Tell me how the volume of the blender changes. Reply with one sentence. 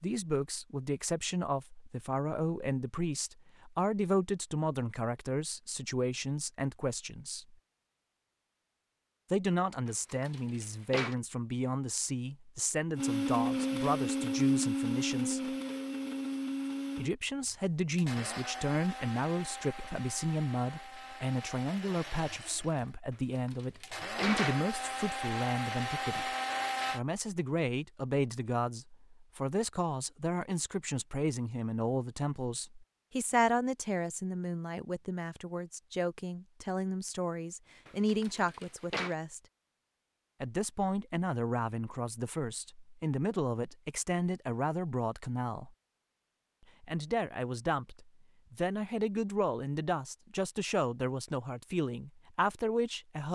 The volume of the blender goes down, then up.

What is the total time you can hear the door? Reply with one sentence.
You can hear the door for 4 seconds altogether.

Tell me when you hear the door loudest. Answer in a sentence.
The loudest moment of the door is at 24 seconds.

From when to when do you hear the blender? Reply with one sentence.
You can hear the blender from 12.9 to 27.0 s.